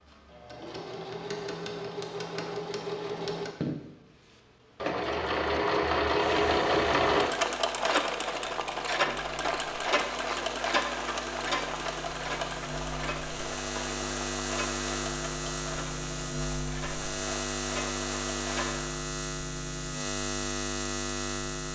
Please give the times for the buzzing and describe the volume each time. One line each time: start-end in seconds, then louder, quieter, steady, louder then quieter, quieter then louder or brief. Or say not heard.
6.2-21.6 louder.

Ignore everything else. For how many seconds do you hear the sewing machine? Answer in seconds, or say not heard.
18 s.